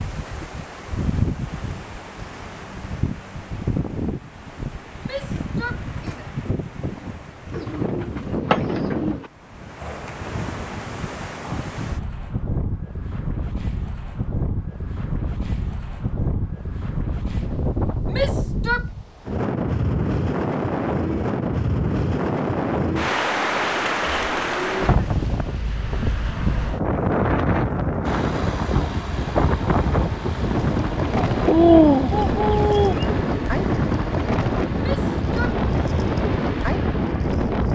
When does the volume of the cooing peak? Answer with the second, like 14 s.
32 s.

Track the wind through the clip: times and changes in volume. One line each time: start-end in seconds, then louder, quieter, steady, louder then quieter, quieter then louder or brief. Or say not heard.
0.0-37.7 louder.